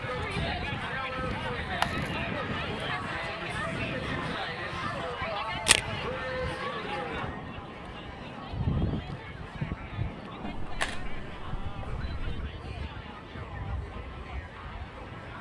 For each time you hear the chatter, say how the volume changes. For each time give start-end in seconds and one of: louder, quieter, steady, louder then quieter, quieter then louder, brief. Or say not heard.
0.0-15.3 quieter.